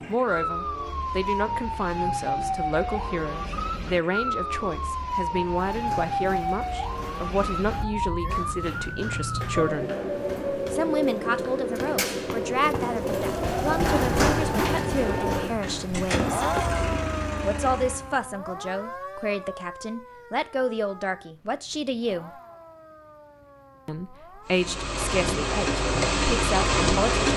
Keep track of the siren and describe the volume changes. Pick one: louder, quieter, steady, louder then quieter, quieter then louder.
quieter.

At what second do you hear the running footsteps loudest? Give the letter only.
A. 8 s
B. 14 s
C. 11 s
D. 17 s
B.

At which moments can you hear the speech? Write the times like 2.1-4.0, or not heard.
0.1-9.9, 10.7-16.4, 17.4-22.3, 23.9-27.2.